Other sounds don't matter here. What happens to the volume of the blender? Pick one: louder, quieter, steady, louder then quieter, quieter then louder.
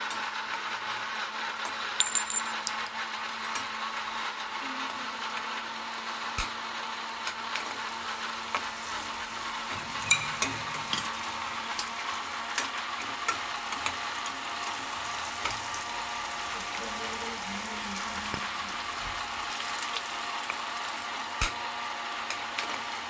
steady.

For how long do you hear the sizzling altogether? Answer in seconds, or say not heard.
23 s.